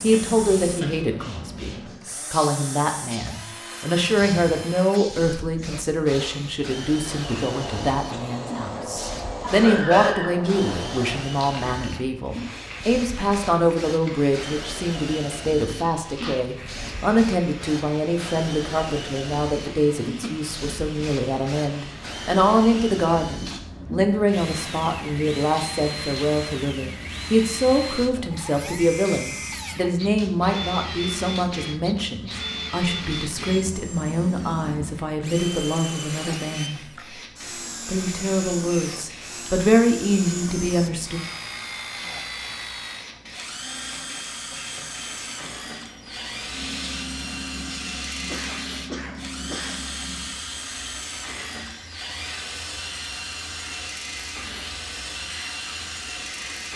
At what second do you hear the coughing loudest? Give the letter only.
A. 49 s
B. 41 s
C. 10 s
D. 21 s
C.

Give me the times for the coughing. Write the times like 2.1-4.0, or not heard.
9.4-10.3, 20.2-21.0, 48.2-49.8.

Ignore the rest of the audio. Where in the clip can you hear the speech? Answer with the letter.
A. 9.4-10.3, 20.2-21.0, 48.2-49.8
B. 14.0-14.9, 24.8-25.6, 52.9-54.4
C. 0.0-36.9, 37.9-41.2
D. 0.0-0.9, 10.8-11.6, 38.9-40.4
C.